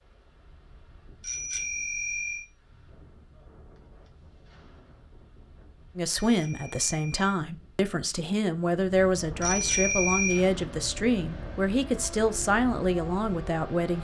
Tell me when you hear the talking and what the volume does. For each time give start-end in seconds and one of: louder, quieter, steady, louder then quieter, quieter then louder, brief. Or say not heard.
6.0-13.9 steady.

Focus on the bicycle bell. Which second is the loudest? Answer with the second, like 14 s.
10 s.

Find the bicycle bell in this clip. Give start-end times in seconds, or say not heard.
1.2-2.5, 6.2-7.4, 9.4-10.4.